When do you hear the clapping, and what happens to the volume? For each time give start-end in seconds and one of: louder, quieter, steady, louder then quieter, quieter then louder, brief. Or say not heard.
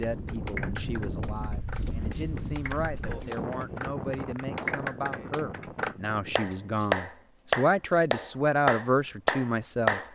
0.0-10.0 louder.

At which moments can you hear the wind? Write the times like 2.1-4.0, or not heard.
0.0-6.8.